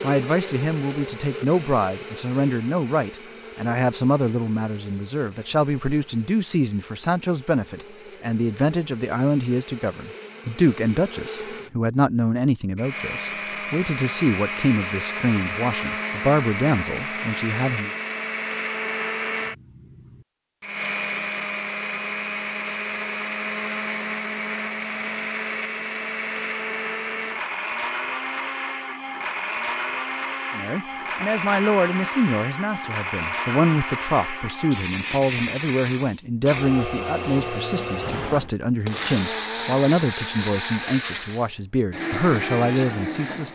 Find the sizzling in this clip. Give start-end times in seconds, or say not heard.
not heard.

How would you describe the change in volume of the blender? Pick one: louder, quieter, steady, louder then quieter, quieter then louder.
louder.